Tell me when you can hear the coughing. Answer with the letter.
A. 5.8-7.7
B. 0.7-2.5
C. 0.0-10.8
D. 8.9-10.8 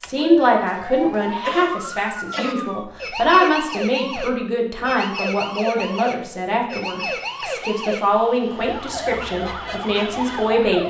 B.